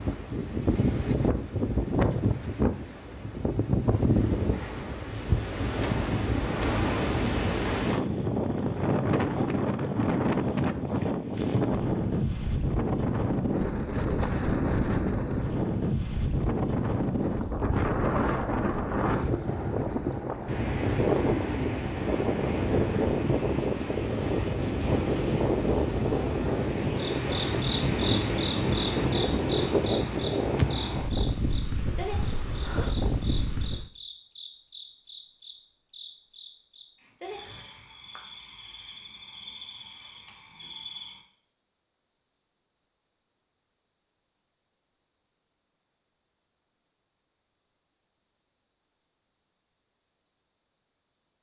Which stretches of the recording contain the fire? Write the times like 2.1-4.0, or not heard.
not heard.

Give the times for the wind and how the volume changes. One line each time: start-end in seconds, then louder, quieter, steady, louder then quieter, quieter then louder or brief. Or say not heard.
0.0-33.9 steady.